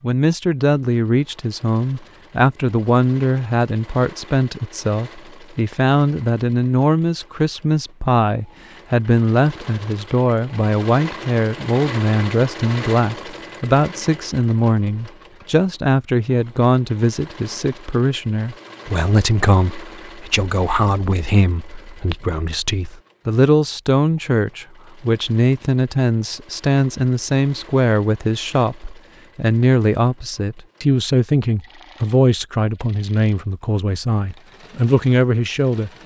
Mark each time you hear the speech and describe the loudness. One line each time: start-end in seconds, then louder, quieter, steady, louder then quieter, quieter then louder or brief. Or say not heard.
0.0-35.9 steady.